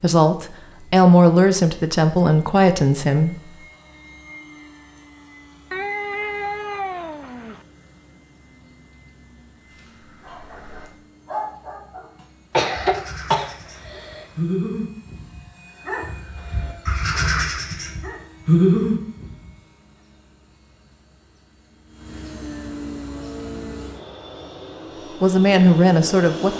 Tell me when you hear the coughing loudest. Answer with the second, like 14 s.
13 s.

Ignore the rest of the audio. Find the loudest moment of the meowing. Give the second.
6 s.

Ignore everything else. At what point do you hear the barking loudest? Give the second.
19 s.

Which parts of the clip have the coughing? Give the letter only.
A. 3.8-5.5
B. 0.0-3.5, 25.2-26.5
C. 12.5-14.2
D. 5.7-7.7
C.